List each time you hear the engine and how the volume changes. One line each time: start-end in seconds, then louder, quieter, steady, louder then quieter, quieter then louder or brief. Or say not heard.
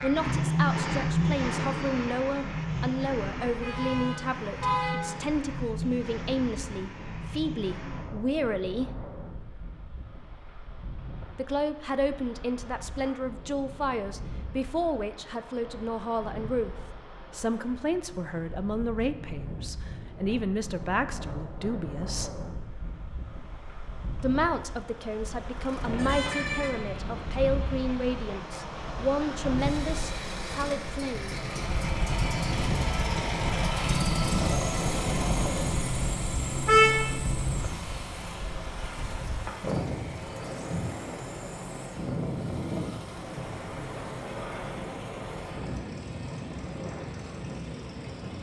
0.0-8.2 quieter
25.5-48.3 louder then quieter.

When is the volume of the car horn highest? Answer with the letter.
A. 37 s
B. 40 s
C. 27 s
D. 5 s
A.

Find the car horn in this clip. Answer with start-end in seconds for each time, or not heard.
3.5-5.0, 25.8-26.8, 36.6-37.1.